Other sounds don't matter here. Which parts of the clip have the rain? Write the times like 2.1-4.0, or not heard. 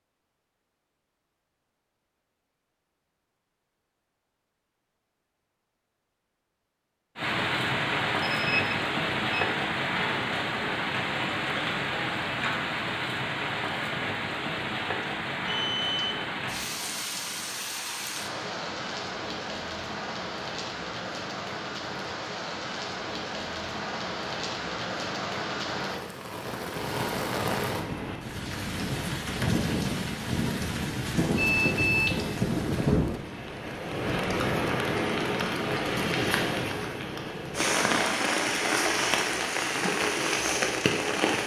7.2-41.4.